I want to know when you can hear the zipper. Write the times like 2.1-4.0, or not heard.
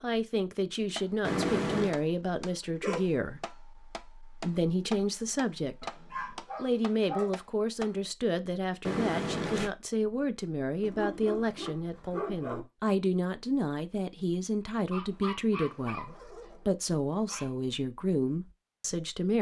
1.2-1.9, 8.8-9.7, 15.0-16.6.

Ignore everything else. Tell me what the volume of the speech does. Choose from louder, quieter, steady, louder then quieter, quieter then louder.
steady.